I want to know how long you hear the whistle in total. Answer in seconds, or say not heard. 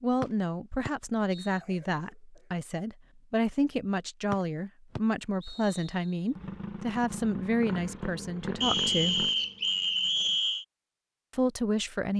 4 s.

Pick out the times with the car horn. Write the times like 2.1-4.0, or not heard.
not heard.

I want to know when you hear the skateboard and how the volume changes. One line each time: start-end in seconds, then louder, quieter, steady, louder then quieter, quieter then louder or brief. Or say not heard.
not heard.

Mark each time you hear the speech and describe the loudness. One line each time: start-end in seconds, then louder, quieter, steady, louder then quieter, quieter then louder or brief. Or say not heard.
0.0-9.3 steady
11.3-12.1 brief.